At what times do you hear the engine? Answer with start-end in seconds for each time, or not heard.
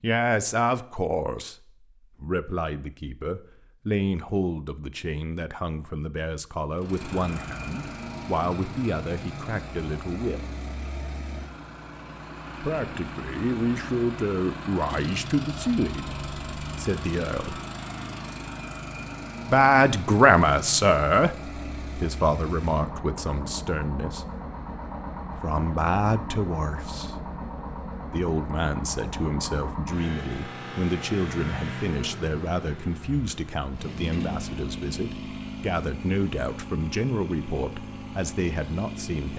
6.8-39.3.